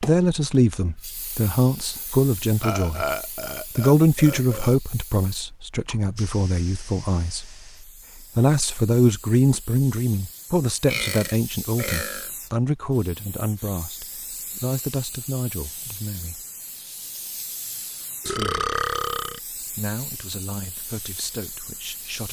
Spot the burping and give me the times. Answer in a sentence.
The burping can be heard from 2.6 to 4.8 s, from 10.8 to 12.3 s and from 18.2 to 19.4 s.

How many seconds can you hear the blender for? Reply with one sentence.
You can't hear the blender here.